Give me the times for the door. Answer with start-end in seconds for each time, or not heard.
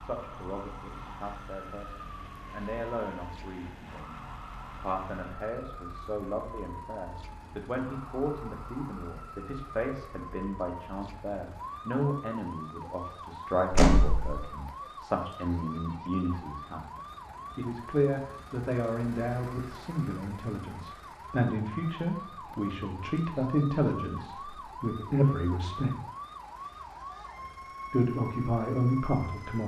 13.7-14.4.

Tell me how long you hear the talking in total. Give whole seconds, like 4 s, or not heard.
27 s.